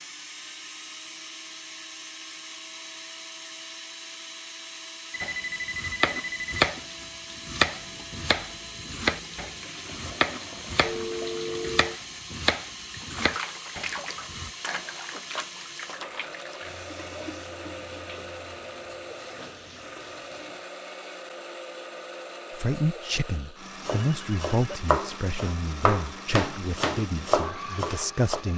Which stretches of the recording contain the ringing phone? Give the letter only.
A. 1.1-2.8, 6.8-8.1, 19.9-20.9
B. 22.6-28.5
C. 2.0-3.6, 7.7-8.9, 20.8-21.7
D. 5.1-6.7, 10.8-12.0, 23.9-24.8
D.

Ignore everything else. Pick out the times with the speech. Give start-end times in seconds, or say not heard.
22.6-28.5.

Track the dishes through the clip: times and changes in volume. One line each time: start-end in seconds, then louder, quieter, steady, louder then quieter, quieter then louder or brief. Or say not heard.
not heard.